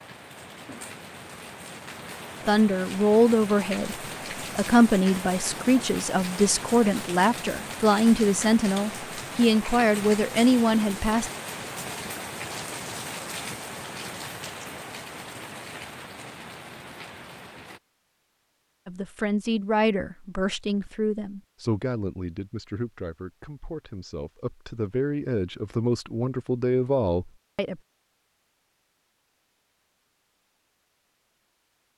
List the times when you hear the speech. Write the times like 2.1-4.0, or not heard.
2.5-4.0, 4.5-11.3, 18.9-27.8.